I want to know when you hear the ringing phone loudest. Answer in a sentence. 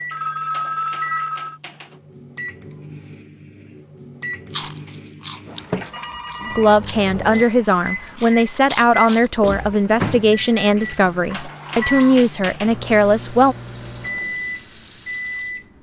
The volume of the ringing phone peaks at 1 second.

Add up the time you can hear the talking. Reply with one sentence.
The talking can be heard for 7 seconds in total.